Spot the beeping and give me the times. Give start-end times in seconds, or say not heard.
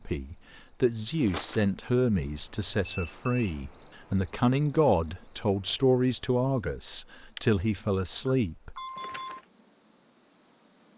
2.2-3.6, 8.2-9.4.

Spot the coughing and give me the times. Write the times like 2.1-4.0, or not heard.
not heard.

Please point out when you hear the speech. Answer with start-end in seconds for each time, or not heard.
0.1-8.8.